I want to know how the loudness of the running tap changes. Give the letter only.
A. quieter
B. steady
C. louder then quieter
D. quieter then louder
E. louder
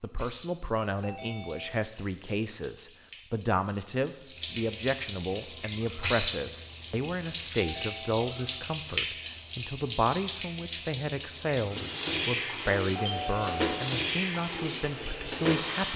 E.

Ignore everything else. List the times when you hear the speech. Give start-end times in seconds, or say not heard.
0.0-15.9.